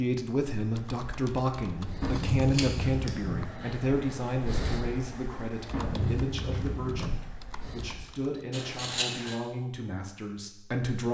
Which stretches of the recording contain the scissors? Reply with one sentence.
You can hear the scissors from 2.2 to 3.1 s and from 8.5 to 9.3 s.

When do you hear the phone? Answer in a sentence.
The phone can be heard from 2.0 to 3.5 s and from 5.7 to 7.2 s.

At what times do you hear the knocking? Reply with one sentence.
The knocking can't be heard in this clip.